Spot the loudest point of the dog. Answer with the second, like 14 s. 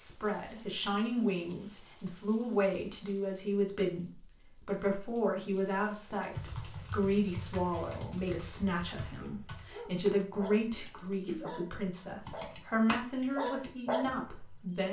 14 s.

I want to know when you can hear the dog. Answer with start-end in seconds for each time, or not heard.
9.2-14.8.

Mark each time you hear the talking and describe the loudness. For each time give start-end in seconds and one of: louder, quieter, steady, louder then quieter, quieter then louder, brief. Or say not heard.
0.0-14.8 steady.